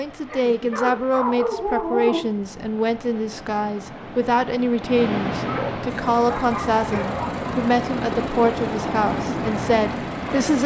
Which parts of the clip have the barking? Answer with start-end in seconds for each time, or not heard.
0.2-2.2, 5.5-7.4.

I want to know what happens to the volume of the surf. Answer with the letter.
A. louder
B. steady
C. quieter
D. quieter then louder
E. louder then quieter
A.